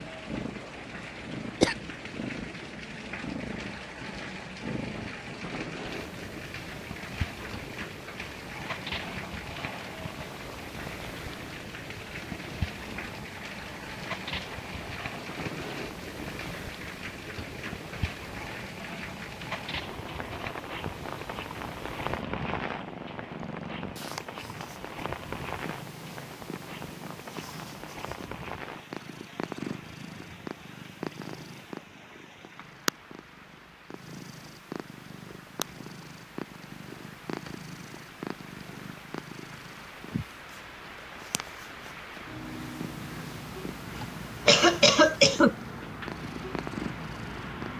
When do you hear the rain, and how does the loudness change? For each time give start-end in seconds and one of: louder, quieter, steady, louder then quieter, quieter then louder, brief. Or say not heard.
0.0-47.7 quieter then louder.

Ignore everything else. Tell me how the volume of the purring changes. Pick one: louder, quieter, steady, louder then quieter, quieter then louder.
steady.